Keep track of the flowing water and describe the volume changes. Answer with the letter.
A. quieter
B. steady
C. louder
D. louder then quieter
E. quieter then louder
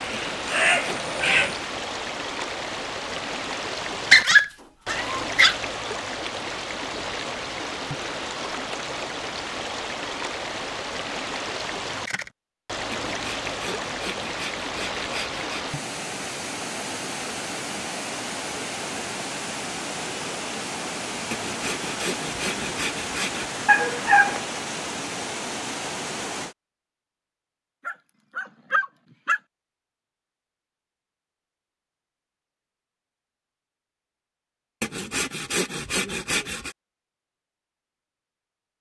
B.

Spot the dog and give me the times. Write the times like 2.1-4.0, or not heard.
4.1-5.5, 23.6-24.4, 27.9-29.4.